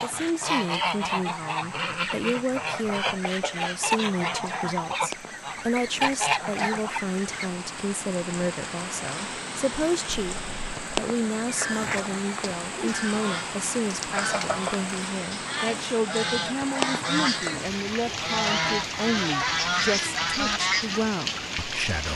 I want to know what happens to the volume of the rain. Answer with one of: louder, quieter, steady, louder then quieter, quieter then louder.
louder.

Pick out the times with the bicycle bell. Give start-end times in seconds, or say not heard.
2.5-4.1, 14.2-14.8.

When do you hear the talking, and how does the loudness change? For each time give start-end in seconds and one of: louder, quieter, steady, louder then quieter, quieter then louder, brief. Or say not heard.
0.0-22.1 steady.